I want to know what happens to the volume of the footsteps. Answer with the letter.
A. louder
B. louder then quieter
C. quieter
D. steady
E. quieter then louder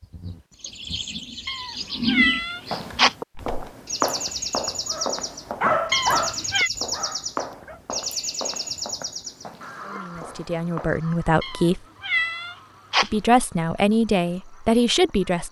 C.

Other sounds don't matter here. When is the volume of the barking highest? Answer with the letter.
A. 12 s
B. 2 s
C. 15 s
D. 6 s
D.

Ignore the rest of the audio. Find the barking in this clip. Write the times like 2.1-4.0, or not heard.
4.8-7.8.